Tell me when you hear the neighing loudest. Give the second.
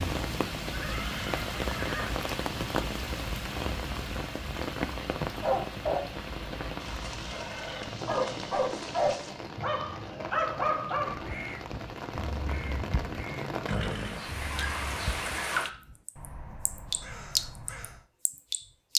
14 s.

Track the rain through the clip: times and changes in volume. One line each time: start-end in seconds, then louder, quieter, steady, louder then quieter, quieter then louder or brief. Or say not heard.
0.0-18.9 quieter then louder.